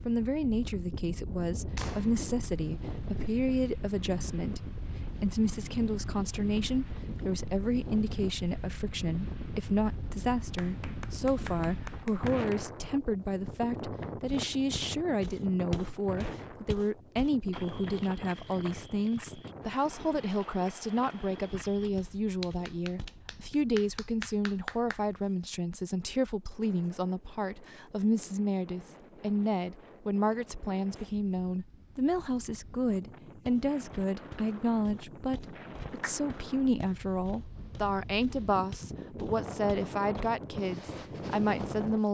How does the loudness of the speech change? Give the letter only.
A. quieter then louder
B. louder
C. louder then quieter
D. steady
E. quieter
D.